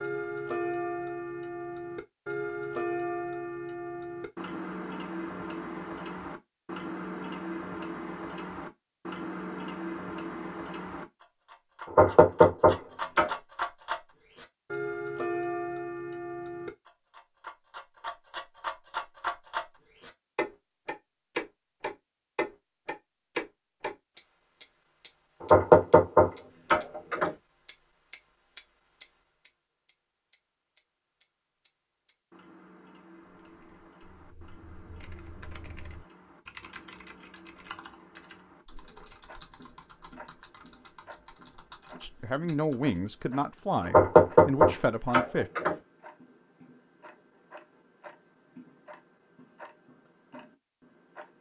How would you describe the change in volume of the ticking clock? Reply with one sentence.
The volume of the ticking clock goes down.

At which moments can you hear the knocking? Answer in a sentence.
You can hear the knocking from 11.9 to 13.3 s, from 25.4 to 27.3 s and from 43.9 to 45.8 s.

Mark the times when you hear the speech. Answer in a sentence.
The speech can be heard from 42.0 to 45.5 s.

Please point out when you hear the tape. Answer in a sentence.
You can't hear the tape here.